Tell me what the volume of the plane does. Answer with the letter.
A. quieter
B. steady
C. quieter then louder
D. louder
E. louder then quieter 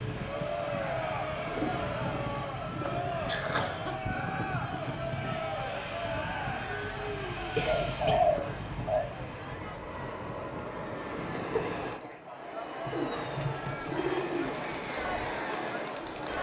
B.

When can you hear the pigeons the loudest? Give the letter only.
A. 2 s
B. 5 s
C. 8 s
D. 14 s
C.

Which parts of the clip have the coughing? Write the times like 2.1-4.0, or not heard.
2.8-4.0, 7.5-8.2, 11.3-13.0.